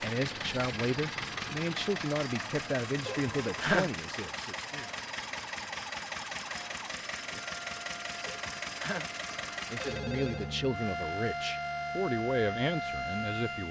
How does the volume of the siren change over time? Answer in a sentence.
The loudness of the siren goes up.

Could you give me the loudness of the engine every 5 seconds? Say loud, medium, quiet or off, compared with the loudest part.
loud, loud, medium.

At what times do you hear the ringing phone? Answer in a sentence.
The ringing phone can be heard from 3.0 to 4.0 s and from 8.2 to 10.5 s.